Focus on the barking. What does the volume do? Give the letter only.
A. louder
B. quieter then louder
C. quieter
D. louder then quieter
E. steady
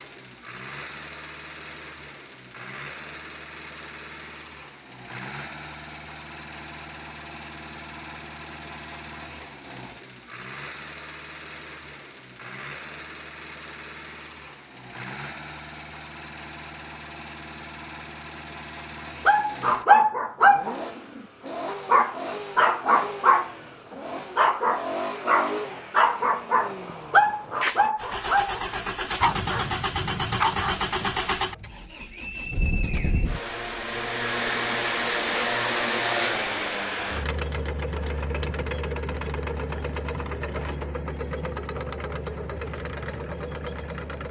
C.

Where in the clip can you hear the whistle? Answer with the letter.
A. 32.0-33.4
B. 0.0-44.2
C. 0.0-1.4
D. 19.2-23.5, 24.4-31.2
A.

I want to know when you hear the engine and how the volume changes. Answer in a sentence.
You can hear the engine from 0.0 to 44.2 s, getting louder.